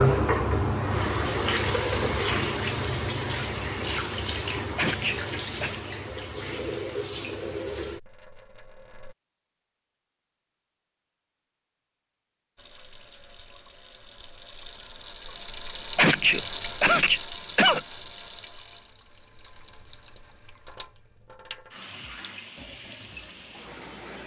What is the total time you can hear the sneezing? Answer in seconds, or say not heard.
3 s.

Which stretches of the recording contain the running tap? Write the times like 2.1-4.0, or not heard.
0.0-9.2, 12.6-24.2.